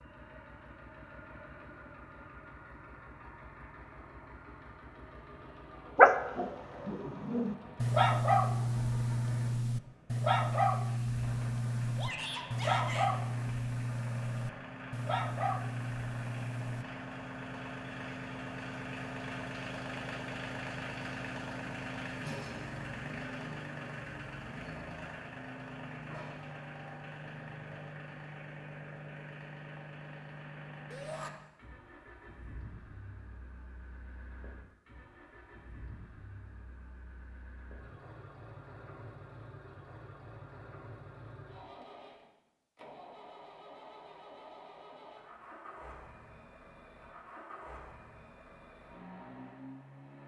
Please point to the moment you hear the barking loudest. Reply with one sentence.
The loudest moment of the barking is at 6 seconds.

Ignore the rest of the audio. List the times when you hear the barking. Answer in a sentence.
You can hear the barking from 6.0 to 16.9 s.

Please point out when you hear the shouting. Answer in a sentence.
The shouting can be heard from 11.9 to 13.1 s and from 30.9 to 31.3 s.